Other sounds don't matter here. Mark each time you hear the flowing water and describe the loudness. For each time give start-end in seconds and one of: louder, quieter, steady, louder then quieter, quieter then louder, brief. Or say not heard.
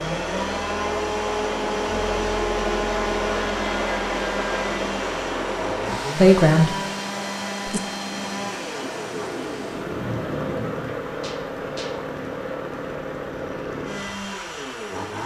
0.0-15.2 quieter.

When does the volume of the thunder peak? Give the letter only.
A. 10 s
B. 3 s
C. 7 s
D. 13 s
A.